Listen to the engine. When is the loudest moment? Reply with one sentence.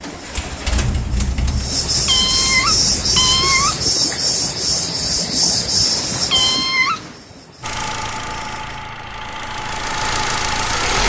The loudest moment of the engine is at 11 seconds.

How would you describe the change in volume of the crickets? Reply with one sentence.
The volume of the crickets goes up, then down.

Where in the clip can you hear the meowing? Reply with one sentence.
The meowing can be heard from 2.0 to 3.9 s and from 6.3 to 7.2 s.